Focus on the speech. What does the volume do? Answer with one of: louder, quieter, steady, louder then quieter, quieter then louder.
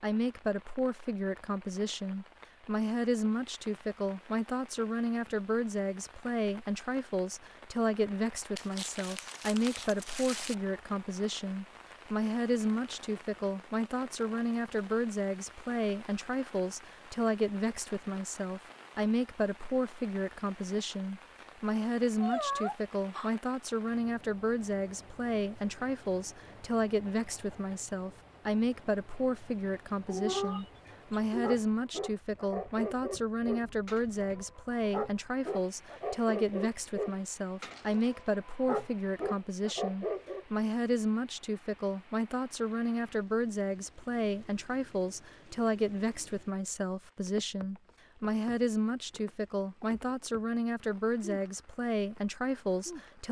steady.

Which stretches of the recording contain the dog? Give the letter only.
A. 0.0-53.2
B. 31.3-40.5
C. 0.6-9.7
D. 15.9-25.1
B.